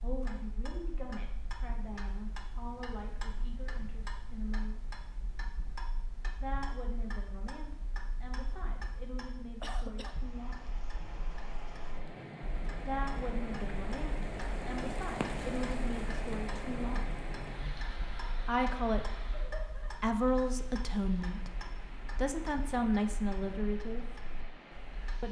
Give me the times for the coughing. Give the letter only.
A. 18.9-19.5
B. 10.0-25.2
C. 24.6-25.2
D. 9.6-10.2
D.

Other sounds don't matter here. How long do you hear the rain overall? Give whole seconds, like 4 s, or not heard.
15 s.